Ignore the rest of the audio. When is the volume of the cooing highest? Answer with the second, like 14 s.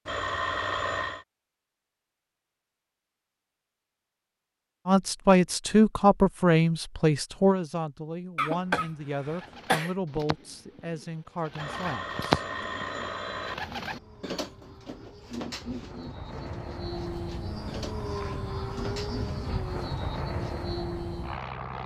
12 s.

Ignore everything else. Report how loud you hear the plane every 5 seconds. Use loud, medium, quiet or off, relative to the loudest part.
off, off, quiet, loud, loud.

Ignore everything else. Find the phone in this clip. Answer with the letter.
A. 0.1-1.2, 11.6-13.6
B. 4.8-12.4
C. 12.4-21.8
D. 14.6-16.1
A.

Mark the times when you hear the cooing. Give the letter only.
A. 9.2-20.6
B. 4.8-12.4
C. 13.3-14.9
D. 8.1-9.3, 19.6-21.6
A.